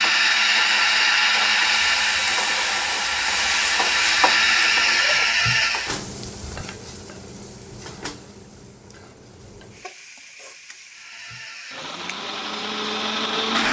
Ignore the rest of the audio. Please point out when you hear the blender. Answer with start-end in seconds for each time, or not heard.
0.0-6.0, 10.8-13.6.